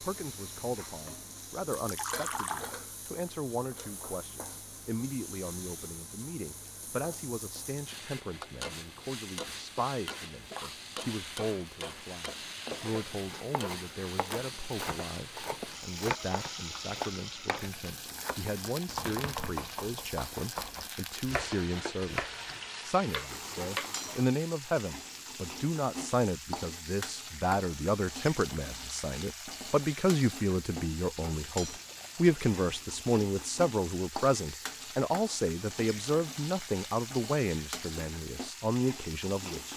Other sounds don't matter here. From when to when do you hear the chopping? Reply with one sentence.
The chopping can be heard from 12.7 to 23.9 s.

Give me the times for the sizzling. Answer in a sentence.
You can hear the sizzling from 0.0 to 39.7 s.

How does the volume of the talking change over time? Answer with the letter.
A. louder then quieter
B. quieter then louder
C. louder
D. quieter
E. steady
C.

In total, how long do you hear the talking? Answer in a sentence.
You can hear the talking for 40 seconds altogether.